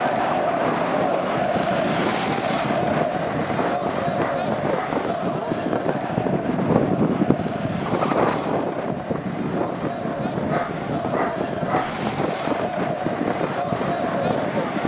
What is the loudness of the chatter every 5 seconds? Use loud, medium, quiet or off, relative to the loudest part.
loud, medium, loud.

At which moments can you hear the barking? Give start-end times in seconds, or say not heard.
3.5-5.0, 10.4-12.0.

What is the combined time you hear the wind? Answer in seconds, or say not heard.
15 s.